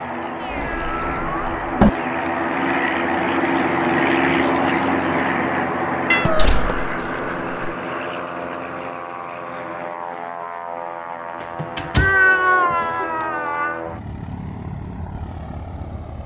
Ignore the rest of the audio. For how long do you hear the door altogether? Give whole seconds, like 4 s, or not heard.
5 s.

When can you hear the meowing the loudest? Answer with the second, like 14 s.
12 s.